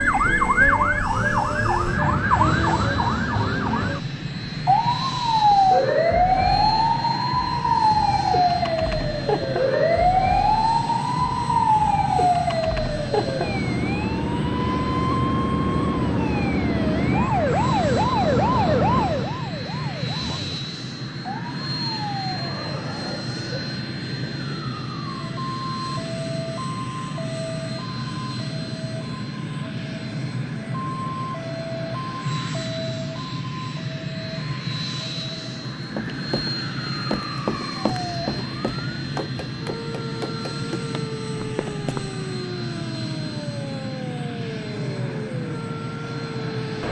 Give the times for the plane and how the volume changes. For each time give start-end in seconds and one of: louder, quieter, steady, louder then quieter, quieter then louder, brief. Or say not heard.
0.0-46.8 steady.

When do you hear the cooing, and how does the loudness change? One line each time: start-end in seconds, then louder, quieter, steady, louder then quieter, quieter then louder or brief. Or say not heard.
not heard.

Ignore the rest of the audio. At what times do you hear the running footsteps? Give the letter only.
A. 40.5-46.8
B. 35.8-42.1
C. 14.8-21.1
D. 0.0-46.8
B.